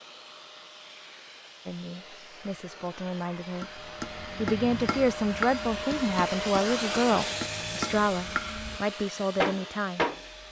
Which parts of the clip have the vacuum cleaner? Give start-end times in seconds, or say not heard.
0.0-10.4.